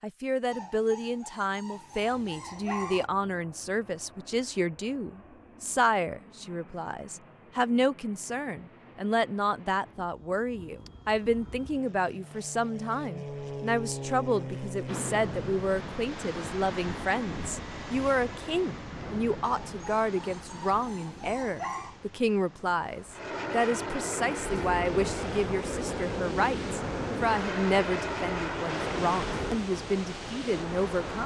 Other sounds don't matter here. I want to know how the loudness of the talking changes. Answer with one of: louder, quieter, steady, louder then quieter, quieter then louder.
steady.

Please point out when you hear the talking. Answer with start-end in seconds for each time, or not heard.
0.0-31.2.